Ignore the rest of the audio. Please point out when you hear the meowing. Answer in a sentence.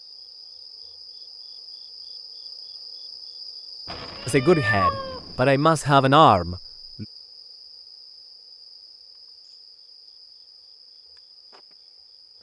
The meowing can be heard from 3.9 to 5.4 s.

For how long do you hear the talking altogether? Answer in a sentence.
The talking can be heard for 3 seconds in total.